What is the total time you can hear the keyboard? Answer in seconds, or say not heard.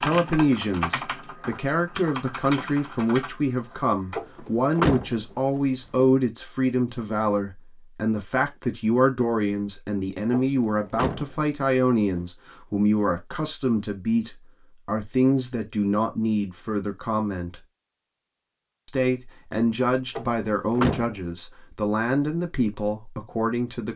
4 s.